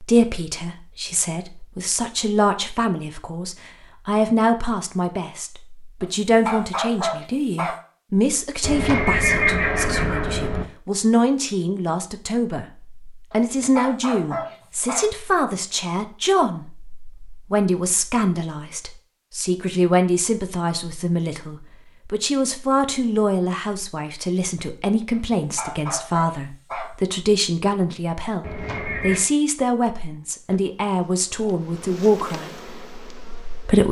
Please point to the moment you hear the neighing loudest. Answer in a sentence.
The volume of the neighing peaks at 9 seconds.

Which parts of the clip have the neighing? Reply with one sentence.
The neighing can be heard from 8.6 to 10.7 s and from 28.4 to 29.3 s.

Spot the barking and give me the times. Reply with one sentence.
The barking can be heard from 6.0 to 7.8 s, from 13.3 to 15.2 s and from 25.1 to 26.9 s.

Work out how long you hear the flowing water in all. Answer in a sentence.
You can't hear the flowing water here.